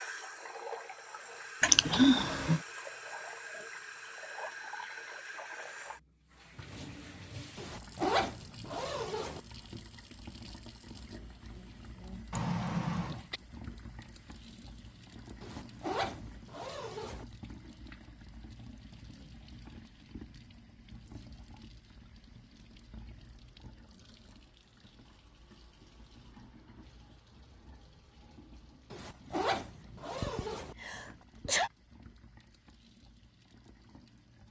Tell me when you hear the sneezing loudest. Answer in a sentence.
The loudest moment of the sneezing is at 2 seconds.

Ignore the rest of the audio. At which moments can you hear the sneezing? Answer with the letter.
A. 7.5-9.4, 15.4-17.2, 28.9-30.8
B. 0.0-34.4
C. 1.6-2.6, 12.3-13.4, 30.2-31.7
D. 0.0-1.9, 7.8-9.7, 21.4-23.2
C.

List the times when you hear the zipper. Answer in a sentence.
You can hear the zipper from 7.5 to 9.4 s, from 15.4 to 17.2 s and from 28.9 to 30.8 s.